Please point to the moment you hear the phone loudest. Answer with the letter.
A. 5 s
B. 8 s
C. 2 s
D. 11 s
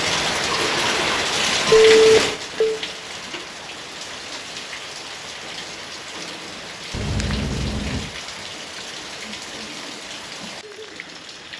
C.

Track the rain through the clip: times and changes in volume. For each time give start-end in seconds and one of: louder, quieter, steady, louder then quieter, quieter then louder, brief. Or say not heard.
0.0-11.5 quieter.